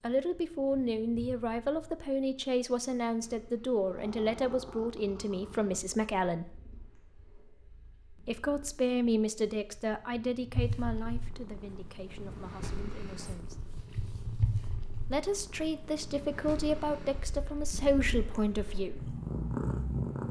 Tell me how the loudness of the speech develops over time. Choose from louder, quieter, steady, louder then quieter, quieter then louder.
quieter then louder.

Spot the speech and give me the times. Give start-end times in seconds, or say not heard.
0.0-6.6, 8.2-13.7, 15.1-19.2.